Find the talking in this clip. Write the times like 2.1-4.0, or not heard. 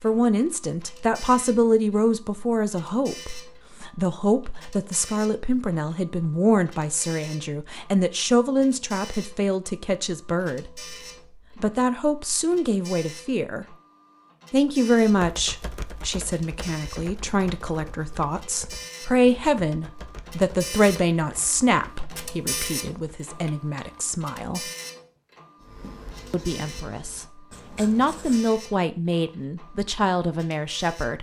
0.0-10.8, 11.6-13.7, 14.5-24.6, 26.3-31.1.